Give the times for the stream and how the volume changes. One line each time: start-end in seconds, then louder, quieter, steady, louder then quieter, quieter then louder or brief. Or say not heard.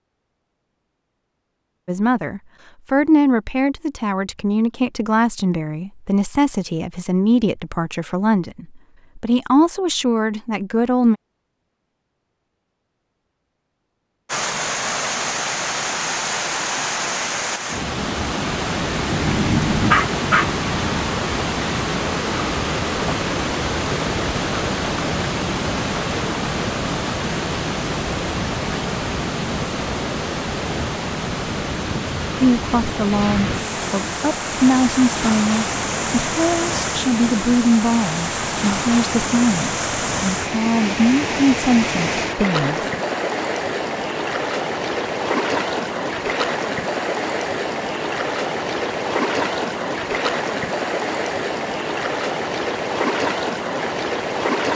14.2-54.6 steady.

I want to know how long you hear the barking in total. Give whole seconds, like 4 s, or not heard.
2 s.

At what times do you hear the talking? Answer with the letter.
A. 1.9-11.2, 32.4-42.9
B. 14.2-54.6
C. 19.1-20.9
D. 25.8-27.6
A.